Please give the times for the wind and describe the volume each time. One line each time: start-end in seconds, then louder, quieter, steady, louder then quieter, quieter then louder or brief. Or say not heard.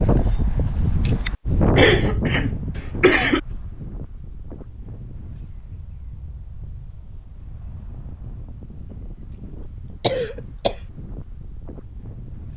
0.0-12.5 quieter.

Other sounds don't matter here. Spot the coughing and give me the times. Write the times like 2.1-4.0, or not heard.
1.8-3.4, 9.6-10.8.